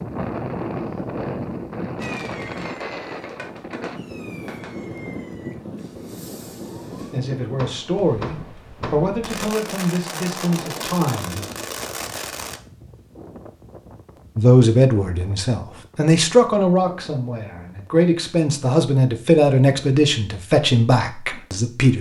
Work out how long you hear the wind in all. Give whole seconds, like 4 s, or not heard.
18 s.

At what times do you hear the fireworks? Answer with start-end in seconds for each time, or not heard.
2.0-12.6.